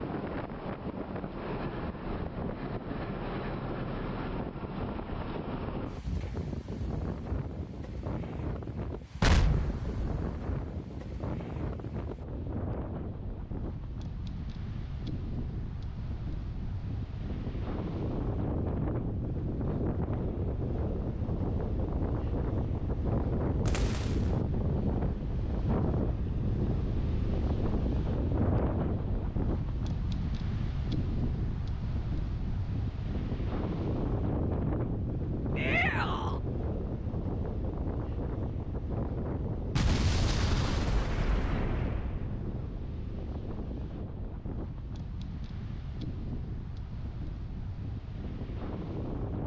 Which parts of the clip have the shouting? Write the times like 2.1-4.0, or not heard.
35.5-36.4.